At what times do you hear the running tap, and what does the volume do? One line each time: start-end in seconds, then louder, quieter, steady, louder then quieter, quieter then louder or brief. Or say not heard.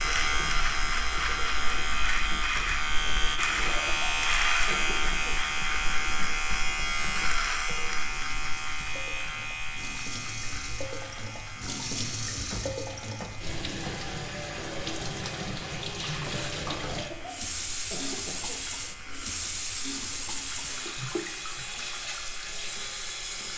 0.0-23.5 louder.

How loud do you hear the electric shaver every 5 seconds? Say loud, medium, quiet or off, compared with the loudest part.
loud, loud, quiet, quiet, quiet.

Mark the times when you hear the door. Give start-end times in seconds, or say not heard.
12.5-14.1.